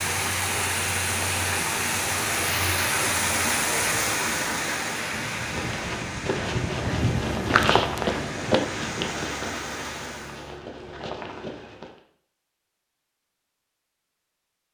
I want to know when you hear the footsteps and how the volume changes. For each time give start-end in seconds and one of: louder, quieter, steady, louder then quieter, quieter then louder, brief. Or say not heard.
5.3-11.9 louder then quieter.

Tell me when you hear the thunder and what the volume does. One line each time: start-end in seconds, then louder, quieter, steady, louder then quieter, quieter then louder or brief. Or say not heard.
5.1-9.1 louder then quieter.